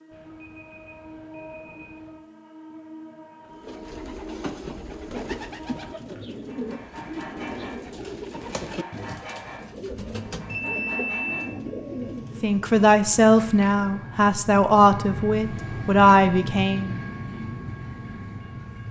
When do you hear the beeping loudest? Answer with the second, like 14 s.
11 s.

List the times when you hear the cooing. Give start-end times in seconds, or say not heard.
3.5-12.6.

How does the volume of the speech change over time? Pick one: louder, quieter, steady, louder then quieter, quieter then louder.
quieter then louder.